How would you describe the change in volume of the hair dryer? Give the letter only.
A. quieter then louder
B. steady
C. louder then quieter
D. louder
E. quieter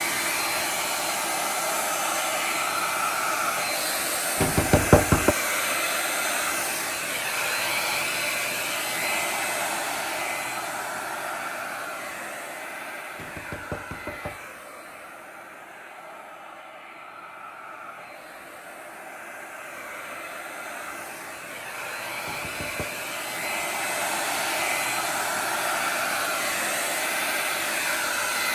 A.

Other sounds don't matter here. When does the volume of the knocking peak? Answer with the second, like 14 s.
5 s.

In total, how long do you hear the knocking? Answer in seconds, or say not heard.
3 s.